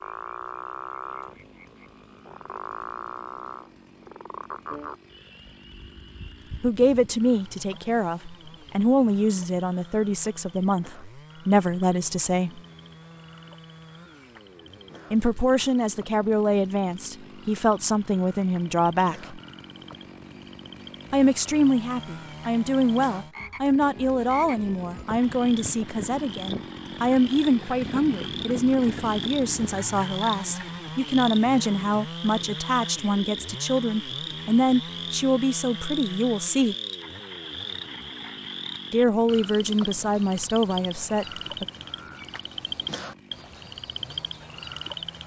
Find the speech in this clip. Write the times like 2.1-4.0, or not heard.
6.6-12.6, 15.1-19.4, 21.1-36.8, 38.9-41.6.